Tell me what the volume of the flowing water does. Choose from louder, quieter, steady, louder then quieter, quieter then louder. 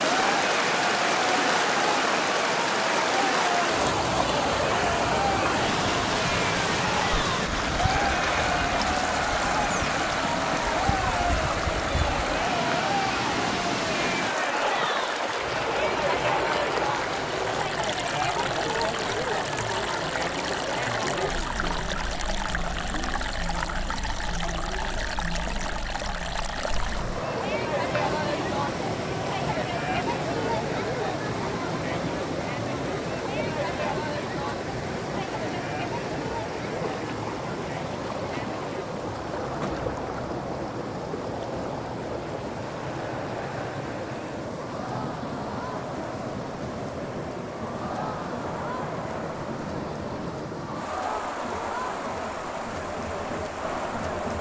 quieter.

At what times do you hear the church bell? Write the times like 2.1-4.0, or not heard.
not heard.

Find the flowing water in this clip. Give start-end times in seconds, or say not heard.
0.0-54.3.